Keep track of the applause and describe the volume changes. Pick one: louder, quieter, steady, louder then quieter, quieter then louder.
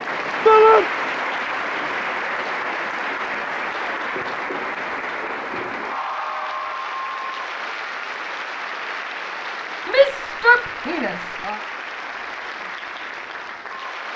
quieter.